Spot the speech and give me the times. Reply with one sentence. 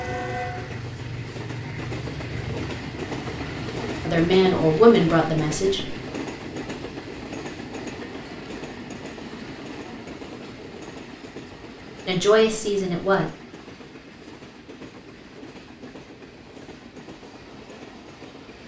You can hear the speech from 4.0 to 6.0 s and from 12.1 to 13.2 s.